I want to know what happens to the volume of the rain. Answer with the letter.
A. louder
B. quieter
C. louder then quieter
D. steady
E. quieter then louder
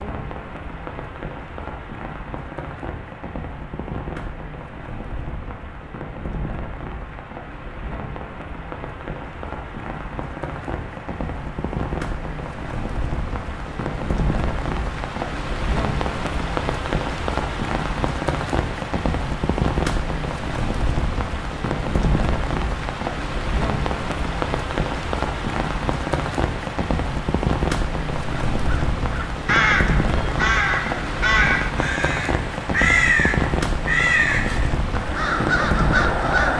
A.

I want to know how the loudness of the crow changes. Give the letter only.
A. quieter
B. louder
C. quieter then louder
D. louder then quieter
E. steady
E.